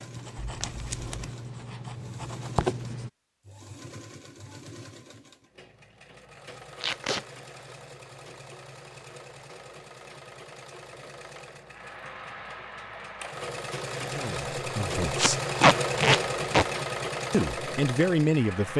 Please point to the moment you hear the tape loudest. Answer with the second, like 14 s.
16 s.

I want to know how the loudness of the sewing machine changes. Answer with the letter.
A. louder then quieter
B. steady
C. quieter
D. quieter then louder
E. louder
E.